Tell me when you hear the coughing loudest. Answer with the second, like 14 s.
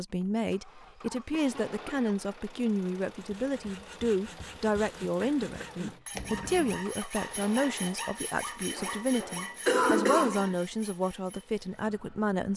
10 s.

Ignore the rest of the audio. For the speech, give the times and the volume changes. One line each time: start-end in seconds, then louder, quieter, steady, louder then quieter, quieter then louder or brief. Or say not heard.
0.0-12.5 steady.